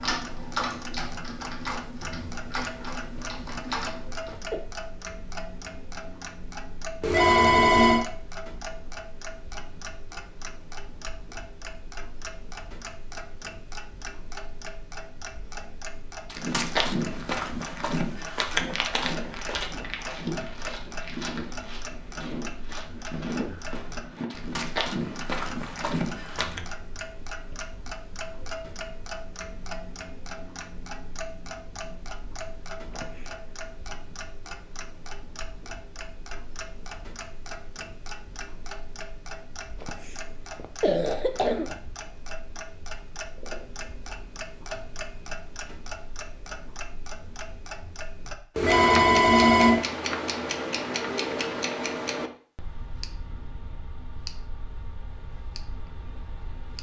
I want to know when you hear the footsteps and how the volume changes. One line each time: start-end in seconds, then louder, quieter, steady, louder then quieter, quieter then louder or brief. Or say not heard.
16.2-26.6 quieter then louder.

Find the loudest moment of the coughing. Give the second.
41 s.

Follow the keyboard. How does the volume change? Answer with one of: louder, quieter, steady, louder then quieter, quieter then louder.
quieter then louder.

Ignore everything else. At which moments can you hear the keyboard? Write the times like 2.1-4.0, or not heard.
0.0-4.3.